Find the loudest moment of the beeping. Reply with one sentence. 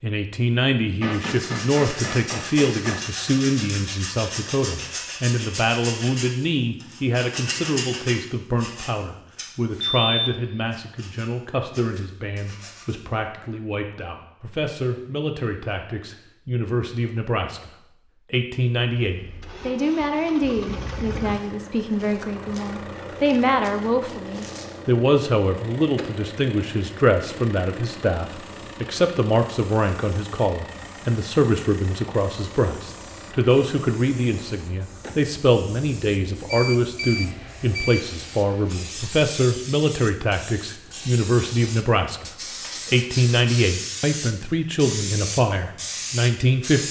The volume of the beeping peaks at 10 seconds.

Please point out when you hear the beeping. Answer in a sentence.
You can hear the beeping from 10.0 to 10.4 s and from 36.5 to 38.0 s.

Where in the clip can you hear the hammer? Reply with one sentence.
You can hear the hammer from 1.0 to 3.0 s.